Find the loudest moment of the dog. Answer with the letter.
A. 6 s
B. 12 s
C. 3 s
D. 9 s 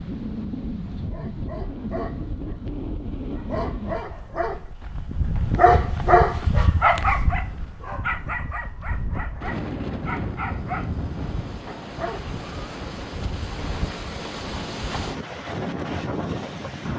A.